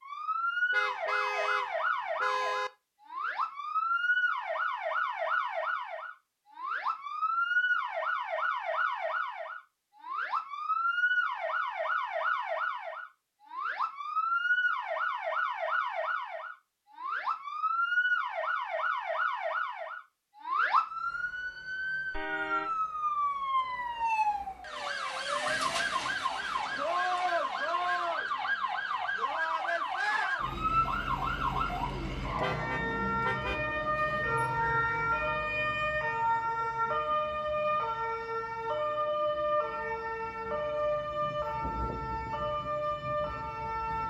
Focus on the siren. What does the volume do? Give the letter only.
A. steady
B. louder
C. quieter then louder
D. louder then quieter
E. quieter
A.